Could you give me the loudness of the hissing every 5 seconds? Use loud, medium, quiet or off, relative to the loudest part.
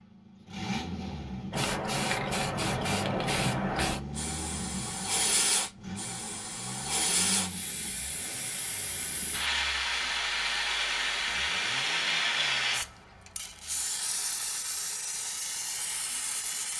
loud, loud, loud, medium.